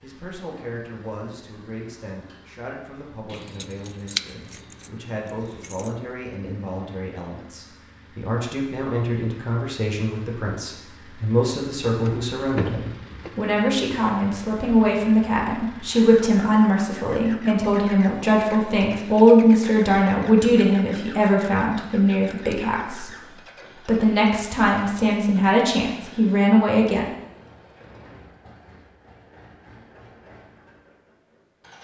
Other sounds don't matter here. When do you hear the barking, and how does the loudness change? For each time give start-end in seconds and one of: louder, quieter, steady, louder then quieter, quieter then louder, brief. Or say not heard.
not heard.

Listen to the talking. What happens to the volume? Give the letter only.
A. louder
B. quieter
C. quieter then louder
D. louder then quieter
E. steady
A.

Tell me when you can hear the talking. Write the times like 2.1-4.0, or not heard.
0.0-23.1, 23.8-27.1.